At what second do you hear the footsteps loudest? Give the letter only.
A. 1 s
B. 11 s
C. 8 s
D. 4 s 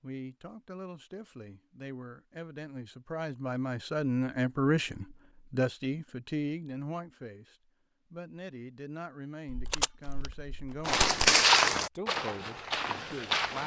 B.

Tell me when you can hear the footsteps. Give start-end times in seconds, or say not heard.
10.8-13.6.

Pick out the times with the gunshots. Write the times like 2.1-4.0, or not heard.
9.4-11.3.